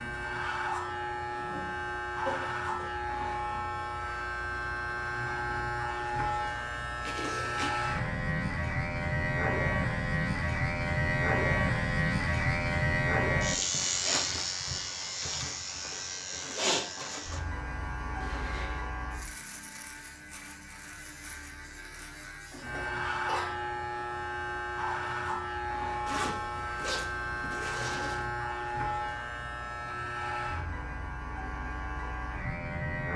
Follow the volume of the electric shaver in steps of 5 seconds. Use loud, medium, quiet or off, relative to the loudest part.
medium, loud, loud, medium, medium, medium, medium.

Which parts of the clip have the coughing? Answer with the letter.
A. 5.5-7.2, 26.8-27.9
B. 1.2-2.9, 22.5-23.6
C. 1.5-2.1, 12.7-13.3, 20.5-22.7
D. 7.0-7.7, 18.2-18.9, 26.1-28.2
B.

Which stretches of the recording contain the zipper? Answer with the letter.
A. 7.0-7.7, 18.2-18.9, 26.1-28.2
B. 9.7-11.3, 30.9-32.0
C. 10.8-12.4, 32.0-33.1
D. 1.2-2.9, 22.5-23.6
A.